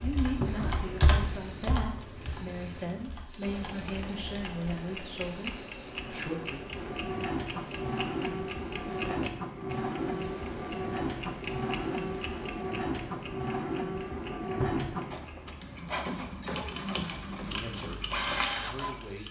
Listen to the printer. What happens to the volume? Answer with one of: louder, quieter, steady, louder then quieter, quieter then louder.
louder.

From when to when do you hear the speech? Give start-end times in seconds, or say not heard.
0.0-6.7, 17.4-19.2.